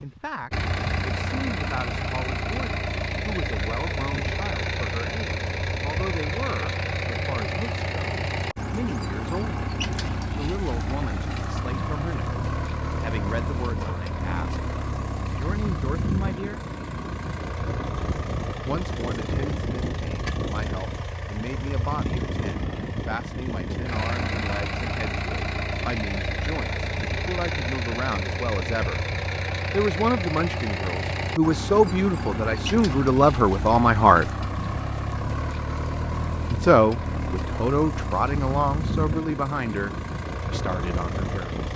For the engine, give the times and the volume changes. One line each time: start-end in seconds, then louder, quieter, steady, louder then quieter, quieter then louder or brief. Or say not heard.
0.0-41.7 steady.